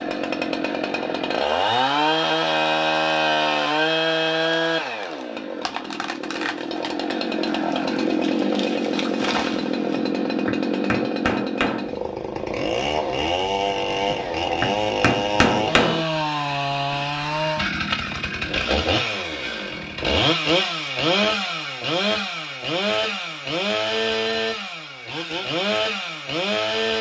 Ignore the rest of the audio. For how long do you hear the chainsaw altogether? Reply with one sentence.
The chainsaw can be heard for 27 seconds in total.